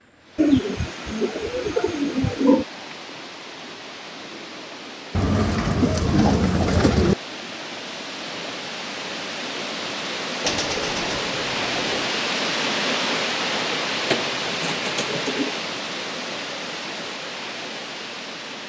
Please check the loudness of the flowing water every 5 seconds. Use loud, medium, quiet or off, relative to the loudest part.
quiet, medium, loud, medium.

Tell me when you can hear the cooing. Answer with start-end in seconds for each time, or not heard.
0.3-2.6, 5.1-7.2, 10.4-12.1, 14.1-15.6.